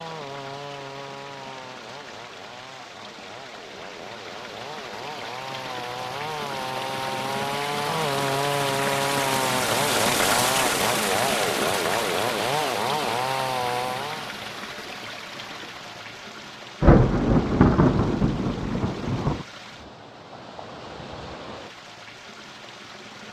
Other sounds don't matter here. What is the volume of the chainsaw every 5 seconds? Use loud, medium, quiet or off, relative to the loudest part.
quiet, loud, loud, off, off.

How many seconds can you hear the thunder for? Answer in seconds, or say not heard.
3 s.